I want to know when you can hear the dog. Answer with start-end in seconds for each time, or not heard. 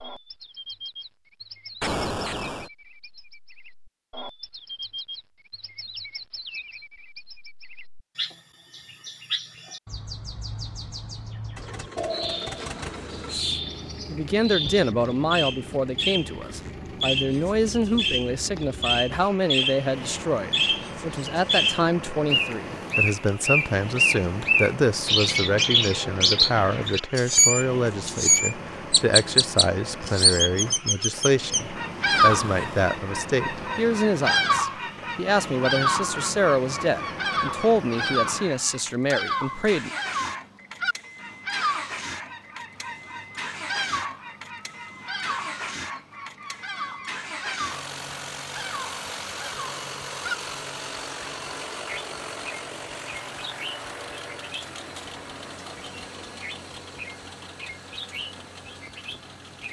not heard.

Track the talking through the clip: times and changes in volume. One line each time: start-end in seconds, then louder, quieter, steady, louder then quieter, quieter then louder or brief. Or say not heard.
13.3-39.9 steady.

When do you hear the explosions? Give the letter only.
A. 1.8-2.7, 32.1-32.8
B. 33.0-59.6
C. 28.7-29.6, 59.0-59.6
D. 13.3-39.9
A.